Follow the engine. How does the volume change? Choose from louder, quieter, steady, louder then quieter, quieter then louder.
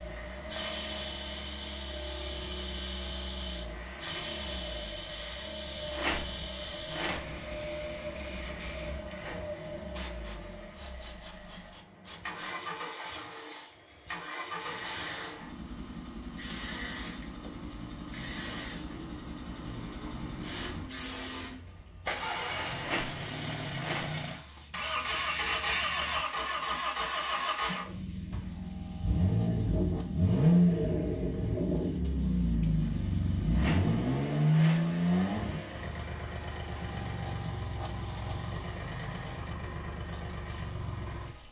louder.